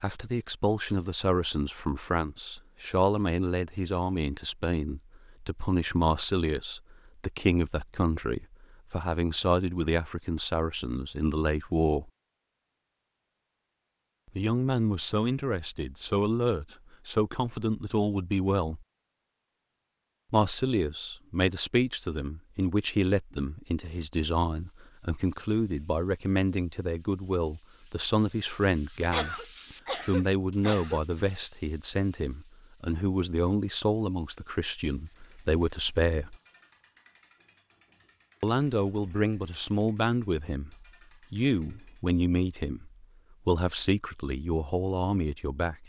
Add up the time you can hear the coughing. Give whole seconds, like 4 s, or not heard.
2 s.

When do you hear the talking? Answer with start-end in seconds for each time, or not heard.
0.0-12.1, 14.3-18.9, 20.3-36.4, 38.4-45.8.